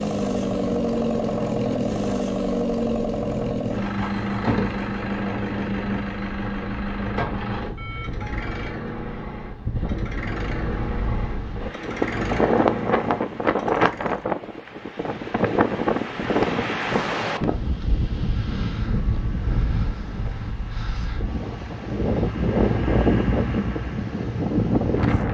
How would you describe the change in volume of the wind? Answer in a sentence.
The loudness of the wind goes up.